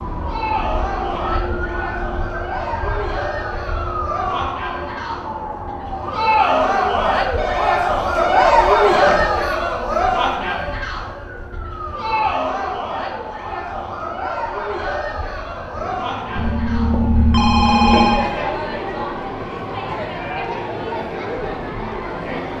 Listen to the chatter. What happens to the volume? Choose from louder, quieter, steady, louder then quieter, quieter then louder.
louder then quieter.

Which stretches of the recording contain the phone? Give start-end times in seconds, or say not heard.
7.3-9.2, 16.4-18.3.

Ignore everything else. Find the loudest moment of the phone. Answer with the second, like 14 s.
18 s.